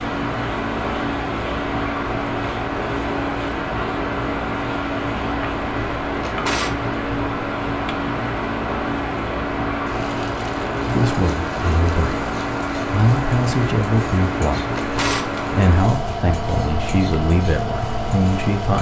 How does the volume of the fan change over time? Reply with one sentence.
The loudness of the fan stays about the same.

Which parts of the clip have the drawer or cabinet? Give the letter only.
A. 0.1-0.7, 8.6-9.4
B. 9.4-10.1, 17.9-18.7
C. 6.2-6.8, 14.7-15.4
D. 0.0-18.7
C.